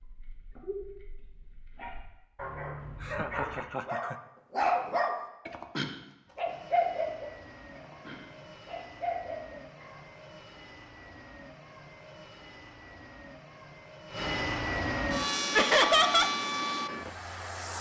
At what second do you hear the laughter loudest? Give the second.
16 s.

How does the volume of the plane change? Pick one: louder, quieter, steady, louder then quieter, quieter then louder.
louder.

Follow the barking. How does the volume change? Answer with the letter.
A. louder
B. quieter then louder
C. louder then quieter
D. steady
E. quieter
C.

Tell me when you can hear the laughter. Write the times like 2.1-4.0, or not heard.
3.0-4.2, 15.5-16.3.